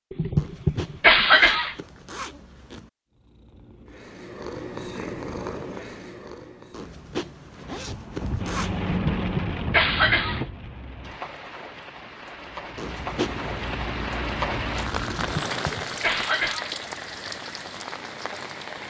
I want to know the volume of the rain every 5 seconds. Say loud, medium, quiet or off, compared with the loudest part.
off, loud, loud, loud.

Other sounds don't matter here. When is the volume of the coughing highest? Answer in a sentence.
The volume of the coughing peaks at 1 second.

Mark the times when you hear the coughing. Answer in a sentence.
The coughing can be heard from 0.1 to 1.8 s, from 8.8 to 10.4 s and from 15.2 to 16.8 s.